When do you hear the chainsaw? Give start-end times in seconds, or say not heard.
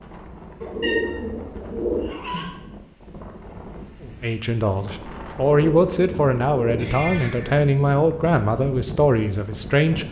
not heard.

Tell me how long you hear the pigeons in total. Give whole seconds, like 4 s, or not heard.
3 s.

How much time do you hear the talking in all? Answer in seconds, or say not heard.
6 s.